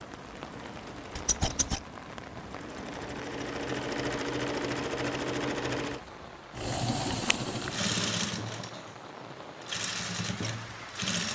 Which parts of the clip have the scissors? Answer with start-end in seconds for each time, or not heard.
1.1-1.8, 6.7-7.8.